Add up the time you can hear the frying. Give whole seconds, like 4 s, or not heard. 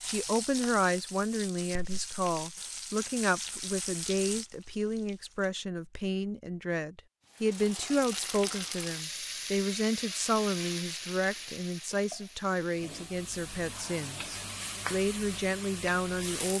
15 s.